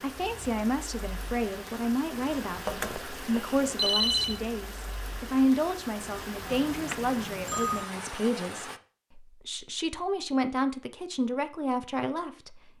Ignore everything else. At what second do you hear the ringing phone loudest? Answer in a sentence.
The loudest moment of the ringing phone is at 4 seconds.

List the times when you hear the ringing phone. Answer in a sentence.
The ringing phone can be heard from 2.6 to 4.4 s and from 6.5 to 7.8 s.